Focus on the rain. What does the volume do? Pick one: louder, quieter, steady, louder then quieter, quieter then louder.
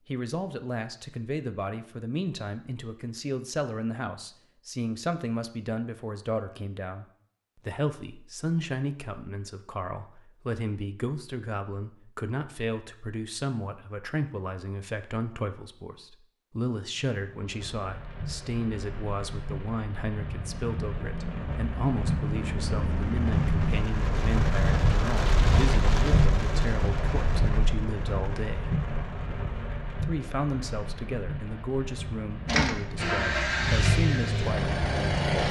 louder then quieter.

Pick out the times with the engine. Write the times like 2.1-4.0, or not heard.
32.5-35.4.